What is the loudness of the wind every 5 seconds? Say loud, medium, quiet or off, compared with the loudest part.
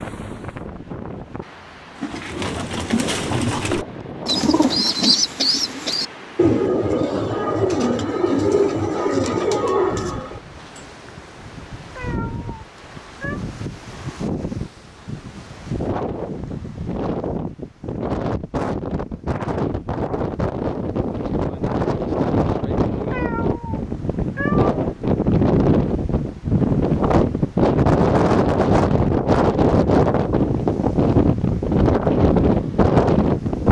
quiet, quiet, quiet, medium, medium, loud, loud.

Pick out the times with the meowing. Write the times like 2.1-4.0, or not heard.
11.9-13.4, 23.1-24.7.